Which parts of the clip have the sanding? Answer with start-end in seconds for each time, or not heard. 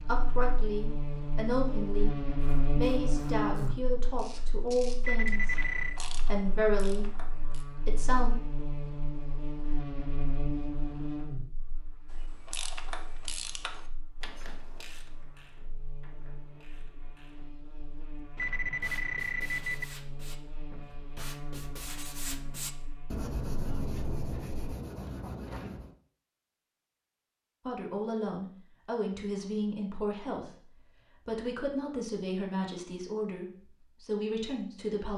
18.6-25.9.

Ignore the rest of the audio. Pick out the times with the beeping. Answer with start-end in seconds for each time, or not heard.
5.0-6.0, 18.4-19.9.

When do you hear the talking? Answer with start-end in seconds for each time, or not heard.
0.1-2.1, 2.8-7.2, 7.8-8.3, 27.6-35.1.